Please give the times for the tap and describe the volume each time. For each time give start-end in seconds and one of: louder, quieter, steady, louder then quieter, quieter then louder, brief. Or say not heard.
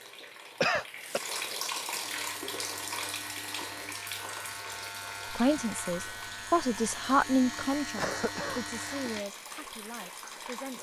0.0-10.7 quieter.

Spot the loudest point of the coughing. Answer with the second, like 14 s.
1 s.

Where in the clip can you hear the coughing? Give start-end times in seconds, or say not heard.
0.6-1.2, 8.0-9.1.